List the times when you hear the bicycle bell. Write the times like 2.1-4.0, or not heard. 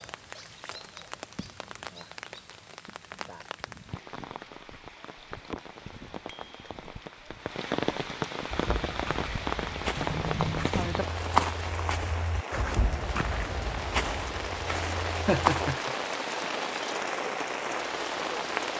6.2-6.7, 9.9-10.7.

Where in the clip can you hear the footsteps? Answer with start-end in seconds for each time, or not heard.
8.5-15.8.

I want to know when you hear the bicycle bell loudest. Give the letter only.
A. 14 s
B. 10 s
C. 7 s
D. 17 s
B.